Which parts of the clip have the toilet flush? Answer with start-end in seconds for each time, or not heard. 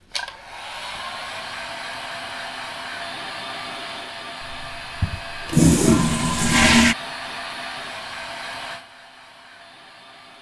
4.4-7.0.